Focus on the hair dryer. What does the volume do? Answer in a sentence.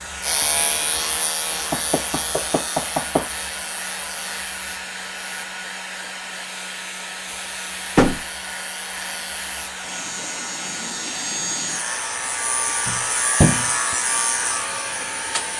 The loudness of the hair dryer stays about the same.